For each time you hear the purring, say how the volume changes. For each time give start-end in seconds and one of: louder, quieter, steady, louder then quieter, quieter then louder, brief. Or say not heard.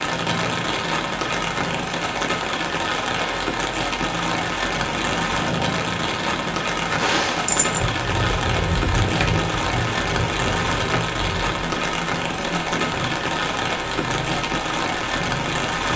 0.0-15.9 louder then quieter.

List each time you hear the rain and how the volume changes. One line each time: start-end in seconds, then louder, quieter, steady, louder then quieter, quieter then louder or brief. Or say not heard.
0.0-15.9 steady.